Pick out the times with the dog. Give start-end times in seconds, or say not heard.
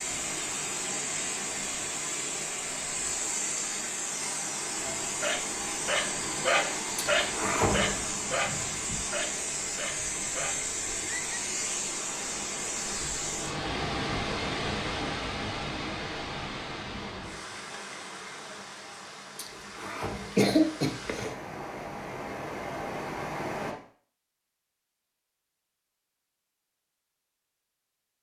4.8-11.3.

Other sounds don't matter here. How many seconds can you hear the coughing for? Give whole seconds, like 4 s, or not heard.
3 s.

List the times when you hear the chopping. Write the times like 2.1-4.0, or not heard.
not heard.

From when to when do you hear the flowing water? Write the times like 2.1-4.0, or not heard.
0.0-23.8.